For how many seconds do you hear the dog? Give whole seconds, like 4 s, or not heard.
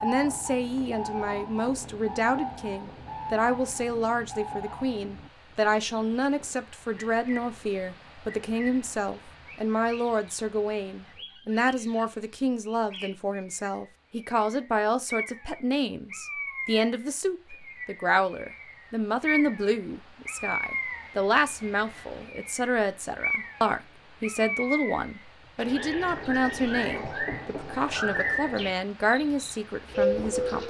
not heard.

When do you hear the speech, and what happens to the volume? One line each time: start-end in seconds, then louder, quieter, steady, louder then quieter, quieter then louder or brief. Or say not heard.
0.0-30.6 steady.